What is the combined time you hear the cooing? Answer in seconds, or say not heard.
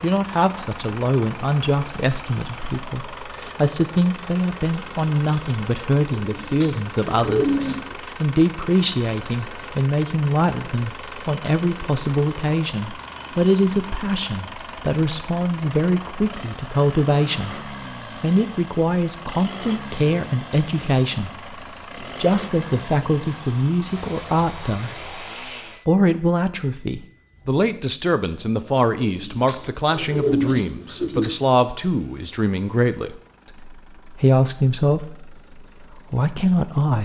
4 s.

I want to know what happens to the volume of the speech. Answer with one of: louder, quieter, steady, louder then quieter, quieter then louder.
steady.